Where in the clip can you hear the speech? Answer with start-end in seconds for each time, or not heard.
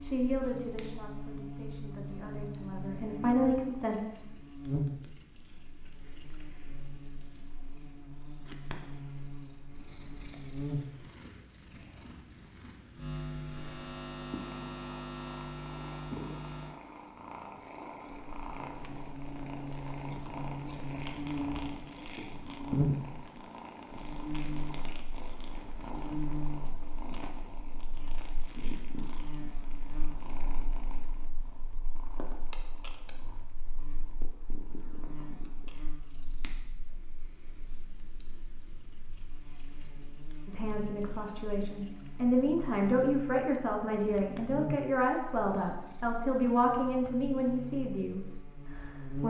0.0-4.0, 40.5-49.2.